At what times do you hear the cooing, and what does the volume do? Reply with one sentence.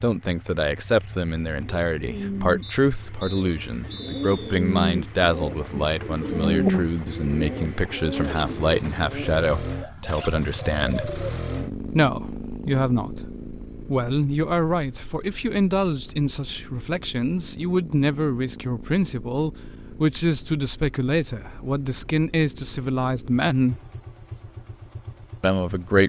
The cooing can be heard from 1.2 to 11.2 s, getting louder then quieter.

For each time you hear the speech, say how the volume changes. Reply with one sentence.
You can hear the speech from 0.0 to 11.2 s, at a steady volume; from 11.9 to 23.8 s, at a steady volume; and briefly from 25.4 to 26.0 s.